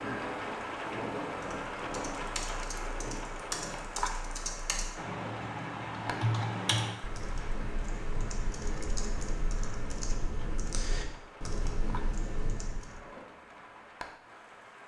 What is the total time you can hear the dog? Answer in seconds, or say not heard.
not heard.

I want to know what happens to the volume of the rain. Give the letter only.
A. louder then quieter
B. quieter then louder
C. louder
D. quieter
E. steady
D.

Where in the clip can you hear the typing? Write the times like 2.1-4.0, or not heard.
1.4-13.0.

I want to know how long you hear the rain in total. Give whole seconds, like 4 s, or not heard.
15 s.